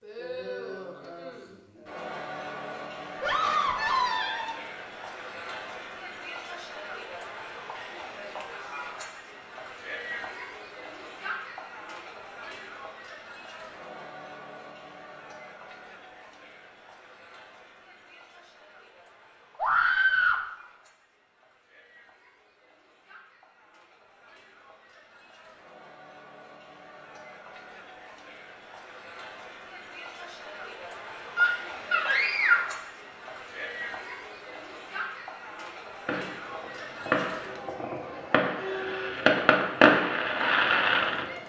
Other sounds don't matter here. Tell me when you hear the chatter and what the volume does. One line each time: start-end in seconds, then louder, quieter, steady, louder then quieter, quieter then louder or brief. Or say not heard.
0.0-41.4 quieter then louder.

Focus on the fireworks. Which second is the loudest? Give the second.
40 s.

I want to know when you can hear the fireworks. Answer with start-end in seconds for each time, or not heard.
36.0-41.2.